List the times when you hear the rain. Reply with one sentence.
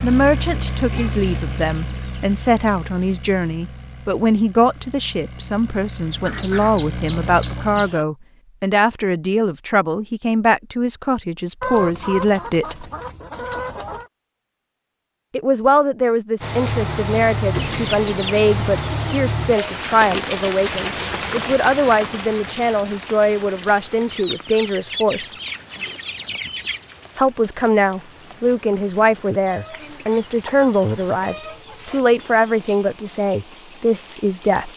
The rain can be heard from 16.4 to 34.7 s.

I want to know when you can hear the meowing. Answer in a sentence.
You can't hear the meowing here.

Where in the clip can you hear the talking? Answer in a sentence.
The talking can be heard from 0.0 to 12.9 s, from 15.3 to 25.3 s and from 27.1 to 34.7 s.